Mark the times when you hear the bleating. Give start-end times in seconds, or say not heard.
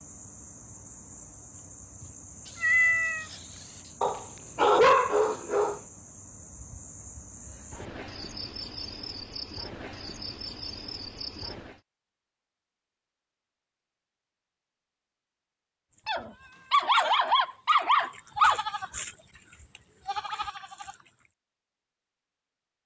15.9-21.1.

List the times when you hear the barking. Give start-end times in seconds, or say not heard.
4.0-5.8, 16.1-18.6.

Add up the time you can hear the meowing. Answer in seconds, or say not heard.
2 s.